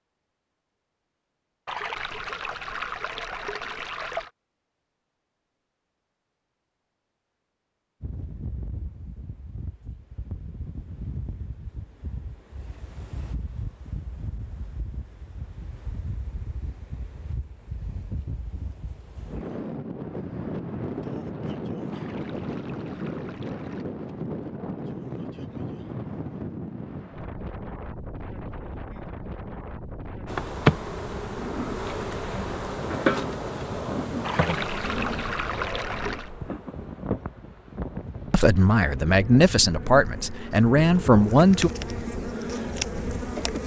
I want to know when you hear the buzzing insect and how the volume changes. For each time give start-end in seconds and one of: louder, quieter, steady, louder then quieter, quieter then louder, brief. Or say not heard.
30.2-43.6 quieter then louder.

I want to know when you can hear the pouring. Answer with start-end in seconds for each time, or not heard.
1.6-4.3, 21.9-23.9, 34.2-36.3.